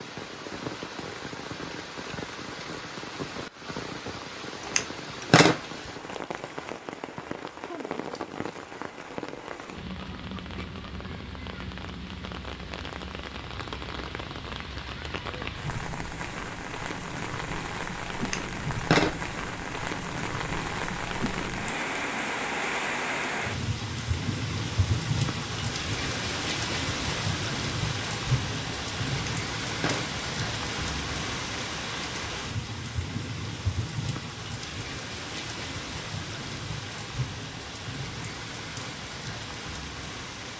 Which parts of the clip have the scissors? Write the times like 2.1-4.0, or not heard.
4.7-5.6, 18.2-19.1, 29.1-30.1.